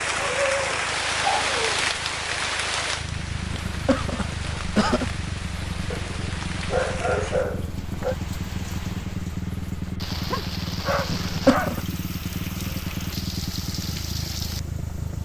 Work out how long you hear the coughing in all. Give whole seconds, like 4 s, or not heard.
2 s.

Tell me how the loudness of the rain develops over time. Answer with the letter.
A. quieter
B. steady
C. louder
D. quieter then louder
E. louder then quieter
A.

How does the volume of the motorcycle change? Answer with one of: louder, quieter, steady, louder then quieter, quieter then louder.
louder.